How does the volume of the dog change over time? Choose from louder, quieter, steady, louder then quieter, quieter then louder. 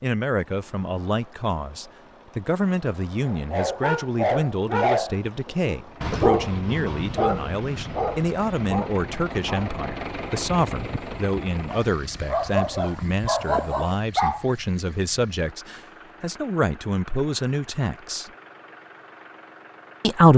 quieter then louder.